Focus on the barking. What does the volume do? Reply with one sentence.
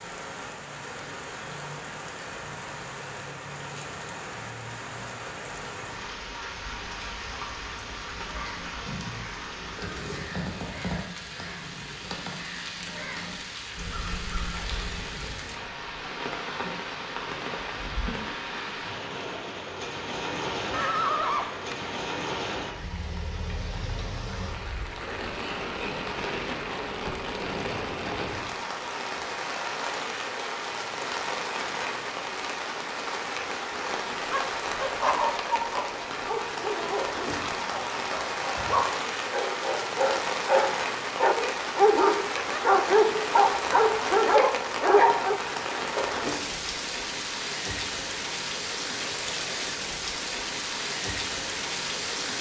The volume of the barking goes up.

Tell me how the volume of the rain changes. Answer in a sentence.
The loudness of the rain goes up.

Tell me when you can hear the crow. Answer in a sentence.
The crow can be heard from 8.1 to 15.3 s.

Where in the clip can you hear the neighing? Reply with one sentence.
You can hear the neighing from 20.7 to 21.9 s.